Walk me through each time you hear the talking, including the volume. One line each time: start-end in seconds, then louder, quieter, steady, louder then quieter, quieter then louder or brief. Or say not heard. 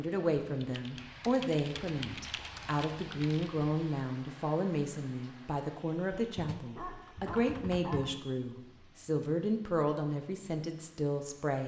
0.0-11.6 steady.